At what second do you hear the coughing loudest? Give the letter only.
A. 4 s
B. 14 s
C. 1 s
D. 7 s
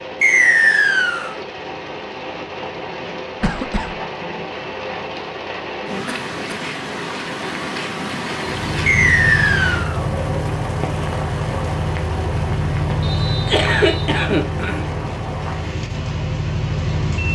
B.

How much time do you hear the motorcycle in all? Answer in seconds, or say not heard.
9 s.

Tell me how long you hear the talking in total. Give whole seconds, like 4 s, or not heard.
not heard.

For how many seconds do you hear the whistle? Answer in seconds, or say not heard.
3 s.